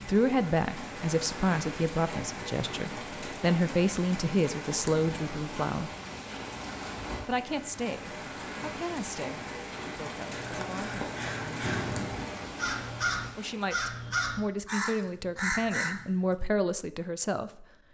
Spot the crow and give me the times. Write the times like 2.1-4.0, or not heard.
10.3-16.4.